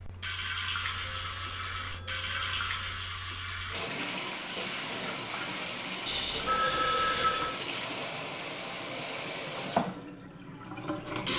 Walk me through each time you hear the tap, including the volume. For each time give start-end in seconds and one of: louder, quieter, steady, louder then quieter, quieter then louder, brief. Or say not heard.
0.0-11.3 steady.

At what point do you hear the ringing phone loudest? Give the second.
7 s.